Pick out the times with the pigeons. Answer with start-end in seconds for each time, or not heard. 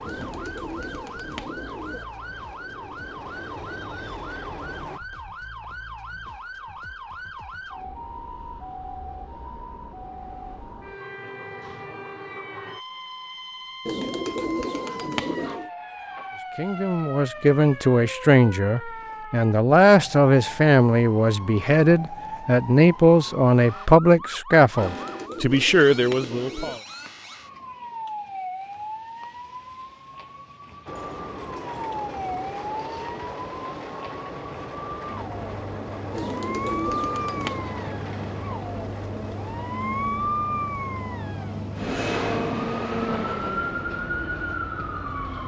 0.1-2.0, 13.8-15.7, 24.8-26.8, 36.1-37.7.